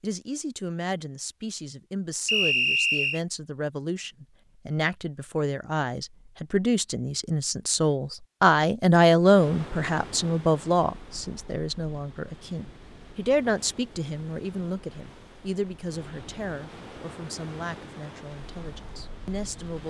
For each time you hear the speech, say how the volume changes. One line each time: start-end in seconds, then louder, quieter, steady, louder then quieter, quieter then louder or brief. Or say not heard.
0.0-19.8 louder then quieter.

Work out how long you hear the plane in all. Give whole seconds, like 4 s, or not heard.
not heard.